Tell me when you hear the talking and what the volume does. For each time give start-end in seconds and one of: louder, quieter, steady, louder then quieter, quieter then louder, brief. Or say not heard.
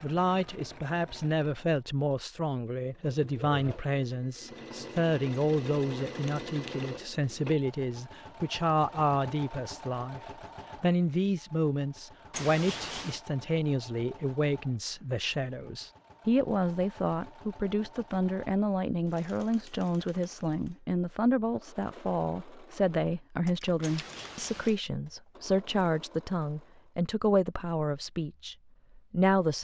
0.0-10.2 steady
10.8-29.5 steady.